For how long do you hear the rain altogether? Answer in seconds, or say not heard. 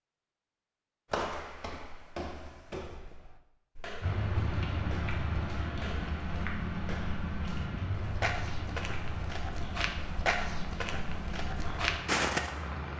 9 s.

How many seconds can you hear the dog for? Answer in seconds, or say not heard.
not heard.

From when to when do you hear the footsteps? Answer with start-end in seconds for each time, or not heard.
1.1-12.5.